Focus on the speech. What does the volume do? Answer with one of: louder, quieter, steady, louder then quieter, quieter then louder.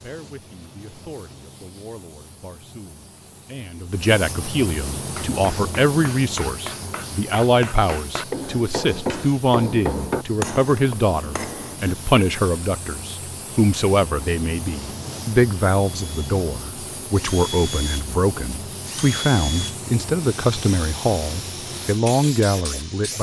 louder.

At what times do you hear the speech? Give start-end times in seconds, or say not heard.
0.0-23.1.